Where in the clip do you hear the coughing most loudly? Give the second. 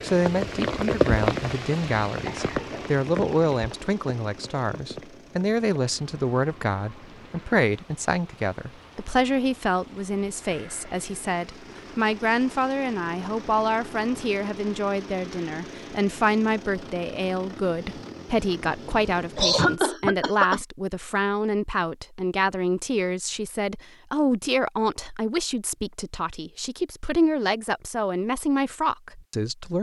20 s.